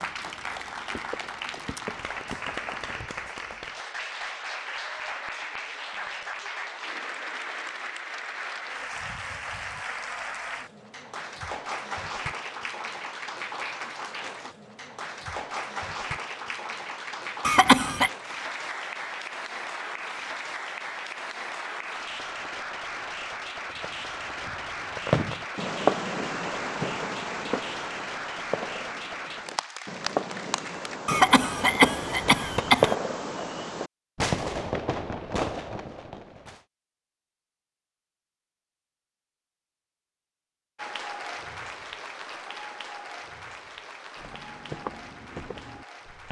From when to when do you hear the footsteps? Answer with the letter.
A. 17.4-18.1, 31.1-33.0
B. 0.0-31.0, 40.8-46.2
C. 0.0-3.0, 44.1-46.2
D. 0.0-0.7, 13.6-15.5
C.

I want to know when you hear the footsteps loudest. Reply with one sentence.
The loudest moment of the footsteps is at 45 seconds.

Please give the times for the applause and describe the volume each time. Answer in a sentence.
The applause can be heard from 0.0 to 31.0 s, at a steady volume; and from 40.8 to 46.2 s, getting quieter.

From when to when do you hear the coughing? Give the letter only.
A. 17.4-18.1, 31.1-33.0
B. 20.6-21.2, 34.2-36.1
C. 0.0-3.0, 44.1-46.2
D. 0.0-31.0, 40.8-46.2
A.